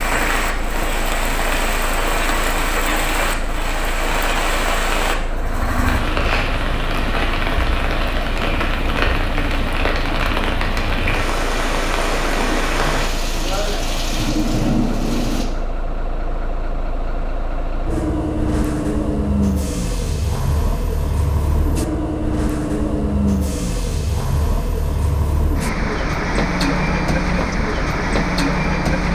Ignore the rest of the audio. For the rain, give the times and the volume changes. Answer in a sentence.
You can hear the rain from 0.0 to 15.4 s, at a steady volume.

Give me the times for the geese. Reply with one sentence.
You can't hear the geese here.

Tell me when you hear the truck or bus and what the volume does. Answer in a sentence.
You can hear the truck or bus from 0.0 to 29.1 s, getting louder.